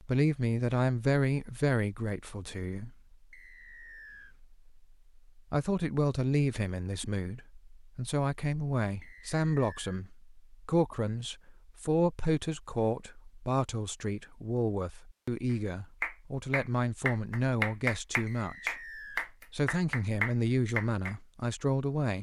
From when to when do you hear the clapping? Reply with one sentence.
The clapping can be heard from 15.5 to 21.1 s.